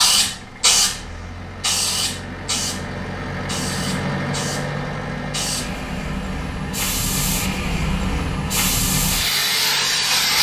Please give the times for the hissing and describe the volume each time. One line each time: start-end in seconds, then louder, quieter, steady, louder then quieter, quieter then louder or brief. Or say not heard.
0.0-10.3 quieter then louder.